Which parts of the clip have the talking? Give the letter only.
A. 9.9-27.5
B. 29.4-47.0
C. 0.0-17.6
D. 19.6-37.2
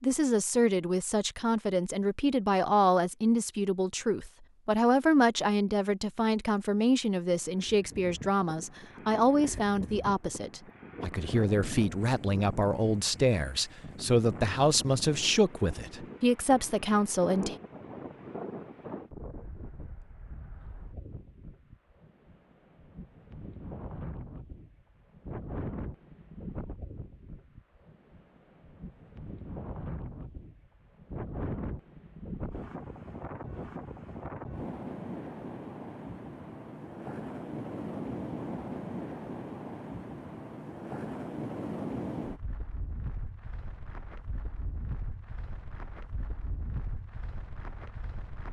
C.